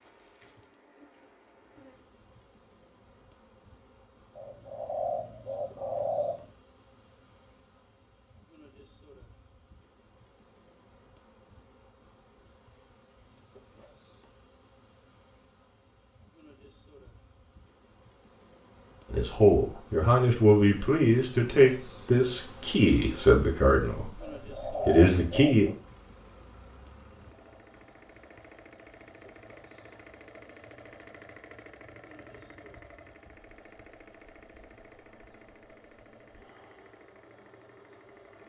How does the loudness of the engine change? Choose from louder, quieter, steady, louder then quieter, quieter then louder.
louder then quieter.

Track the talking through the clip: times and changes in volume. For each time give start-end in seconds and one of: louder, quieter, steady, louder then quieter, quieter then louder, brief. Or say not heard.
19.1-25.7 steady.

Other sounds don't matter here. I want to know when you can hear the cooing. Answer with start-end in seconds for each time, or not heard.
4.3-6.5, 24.2-25.8.